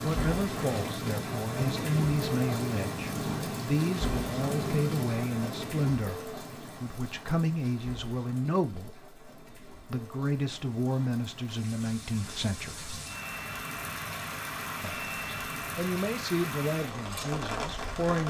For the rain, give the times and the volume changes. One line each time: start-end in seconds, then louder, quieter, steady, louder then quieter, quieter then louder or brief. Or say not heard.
0.0-18.2 quieter then louder.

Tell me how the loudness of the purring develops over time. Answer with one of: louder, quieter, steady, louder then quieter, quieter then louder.
steady.